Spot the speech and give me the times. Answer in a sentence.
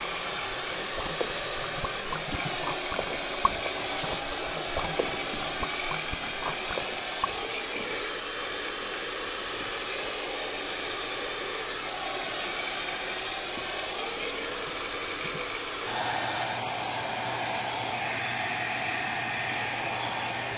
The speech can't be heard in this clip.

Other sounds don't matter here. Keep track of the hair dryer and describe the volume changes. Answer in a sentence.
The volume of the hair dryer stays about the same.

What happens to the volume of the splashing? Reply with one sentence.
The loudness of the splashing stays about the same.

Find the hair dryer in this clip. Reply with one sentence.
The hair dryer can be heard from 0.0 to 20.5 s.